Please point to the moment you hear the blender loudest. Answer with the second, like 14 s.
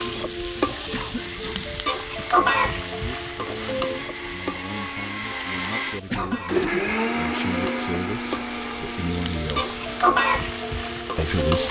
7 s.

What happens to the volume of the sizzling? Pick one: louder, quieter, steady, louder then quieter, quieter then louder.
quieter then louder.